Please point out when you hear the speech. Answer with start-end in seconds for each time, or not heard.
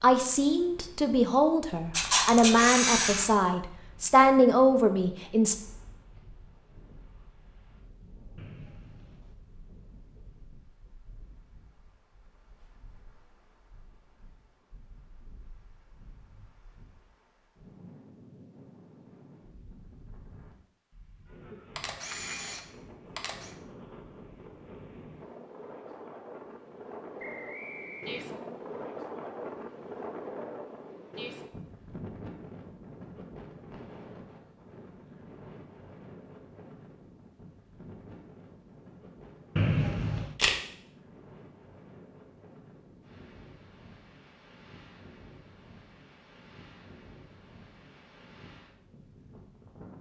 0.0-5.5.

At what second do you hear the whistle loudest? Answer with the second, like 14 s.
40 s.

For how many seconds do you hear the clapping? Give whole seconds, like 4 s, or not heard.
not heard.